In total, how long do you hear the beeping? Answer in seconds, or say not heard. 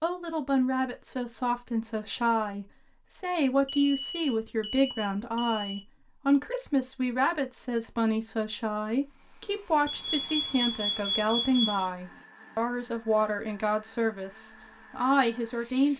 4 s.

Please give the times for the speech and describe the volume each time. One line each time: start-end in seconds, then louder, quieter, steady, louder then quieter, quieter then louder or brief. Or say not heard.
0.0-15.9 steady.